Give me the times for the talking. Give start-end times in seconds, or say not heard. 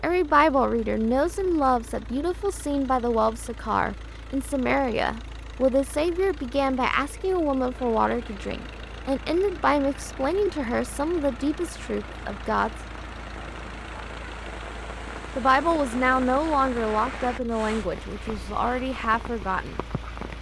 0.0-12.7, 15.3-19.8.